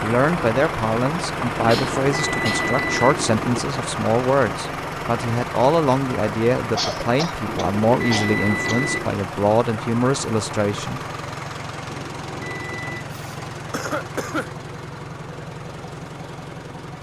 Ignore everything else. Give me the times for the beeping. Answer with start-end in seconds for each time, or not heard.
1.6-3.6, 7.5-9.2, 11.8-13.1.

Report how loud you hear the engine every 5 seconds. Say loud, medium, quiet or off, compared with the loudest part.
loud, loud, medium, medium.